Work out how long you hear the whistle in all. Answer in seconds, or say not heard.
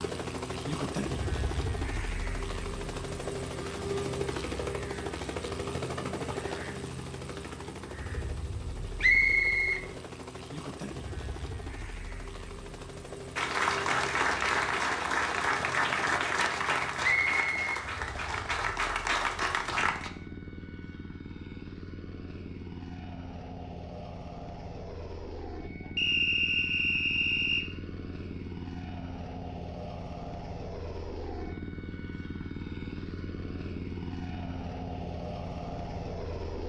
4 s.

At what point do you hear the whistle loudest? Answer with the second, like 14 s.
9 s.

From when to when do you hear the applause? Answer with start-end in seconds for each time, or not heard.
13.3-20.1.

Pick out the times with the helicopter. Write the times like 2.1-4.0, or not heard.
0.0-36.6.